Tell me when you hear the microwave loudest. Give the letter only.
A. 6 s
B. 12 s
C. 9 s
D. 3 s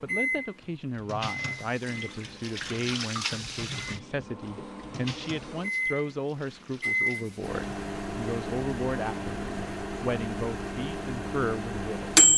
B.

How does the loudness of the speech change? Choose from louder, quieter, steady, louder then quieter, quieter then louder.
steady.